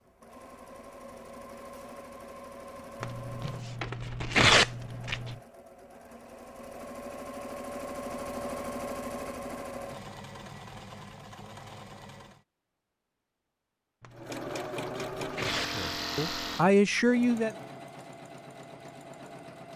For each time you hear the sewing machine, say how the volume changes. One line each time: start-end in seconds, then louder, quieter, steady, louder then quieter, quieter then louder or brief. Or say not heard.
0.0-12.4 louder then quieter
14.1-19.7 quieter.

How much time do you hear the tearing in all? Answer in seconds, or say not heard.
4 s.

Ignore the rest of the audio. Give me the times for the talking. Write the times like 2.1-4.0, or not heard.
15.7-17.6.